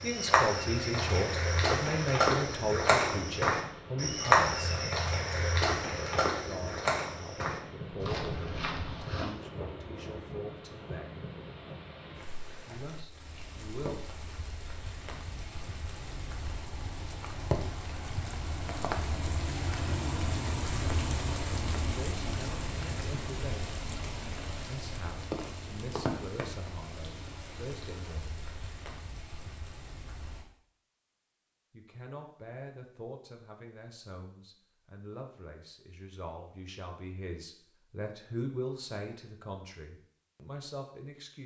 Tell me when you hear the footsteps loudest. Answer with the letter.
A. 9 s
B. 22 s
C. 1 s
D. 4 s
D.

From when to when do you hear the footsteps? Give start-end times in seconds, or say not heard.
0.0-9.3.